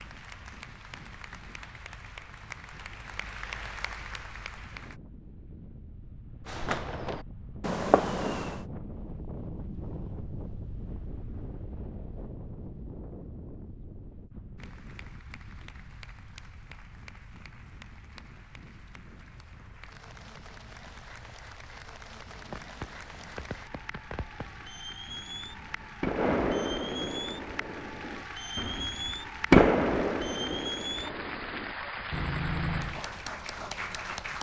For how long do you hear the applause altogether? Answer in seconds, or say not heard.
25 s.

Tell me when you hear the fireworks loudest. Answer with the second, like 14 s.
30 s.